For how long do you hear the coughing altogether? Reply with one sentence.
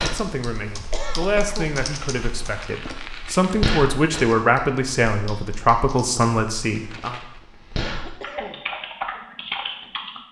You can hear the coughing for 2 seconds altogether.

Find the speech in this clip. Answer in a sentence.
You can hear the speech from 0.0 to 7.2 s.